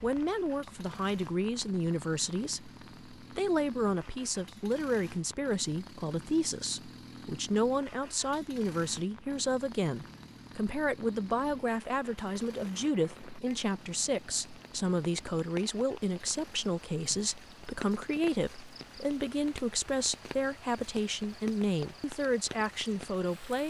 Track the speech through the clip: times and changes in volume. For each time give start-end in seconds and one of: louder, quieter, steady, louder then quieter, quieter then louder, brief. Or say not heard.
0.0-23.6 steady.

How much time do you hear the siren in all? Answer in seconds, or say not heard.
not heard.